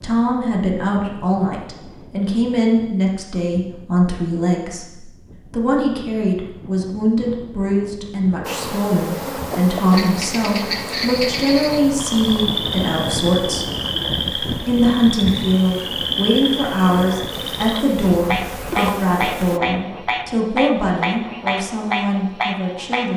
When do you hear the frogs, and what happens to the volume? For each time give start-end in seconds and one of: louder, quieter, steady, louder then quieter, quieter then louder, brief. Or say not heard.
9.9-23.1 steady.